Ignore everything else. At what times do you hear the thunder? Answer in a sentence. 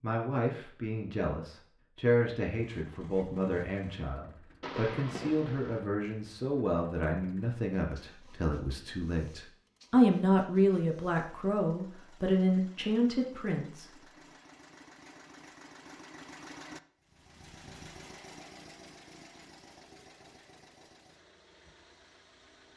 You can hear the thunder from 4.6 to 5.8 s.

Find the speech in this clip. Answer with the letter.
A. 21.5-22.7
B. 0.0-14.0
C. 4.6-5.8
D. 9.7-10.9
B.